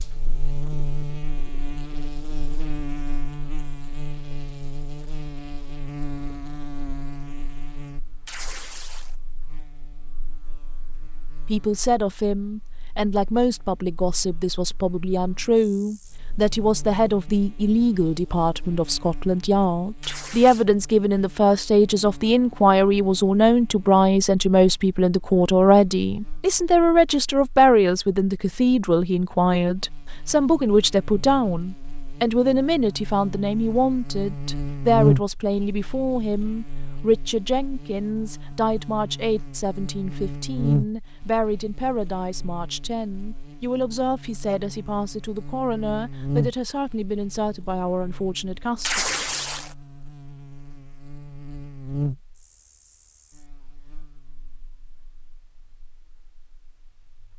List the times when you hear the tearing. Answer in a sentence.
You can hear the tearing from 8.2 to 9.2 s, from 20.0 to 20.6 s and from 48.8 to 49.8 s.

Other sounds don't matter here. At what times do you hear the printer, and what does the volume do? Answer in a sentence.
The printer can't be heard in this clip.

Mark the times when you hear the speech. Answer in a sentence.
You can hear the speech from 11.4 to 49.0 s.